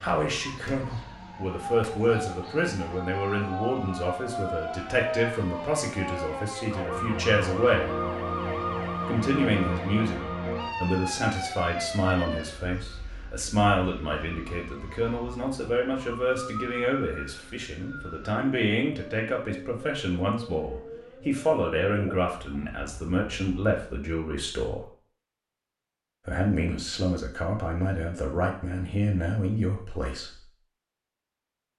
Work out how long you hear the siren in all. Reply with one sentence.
You can hear the siren for 24 seconds altogether.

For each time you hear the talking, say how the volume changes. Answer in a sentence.
The talking can be heard from 0.0 to 7.9 s, at a steady volume; from 9.1 to 24.9 s, at a steady volume; and from 26.2 to 30.4 s, at a steady volume.